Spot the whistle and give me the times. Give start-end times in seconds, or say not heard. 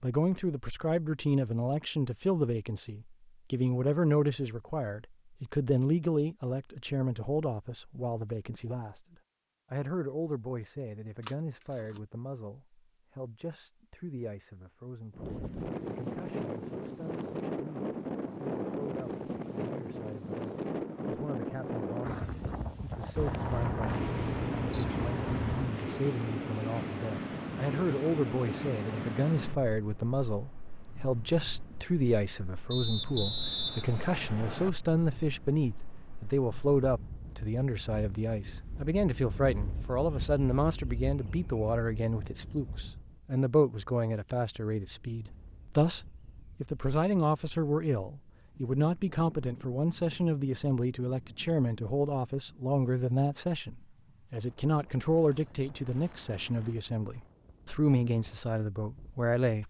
32.7-34.7.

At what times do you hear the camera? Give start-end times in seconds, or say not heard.
11.2-12.0, 23.1-25.8, 55.2-56.2.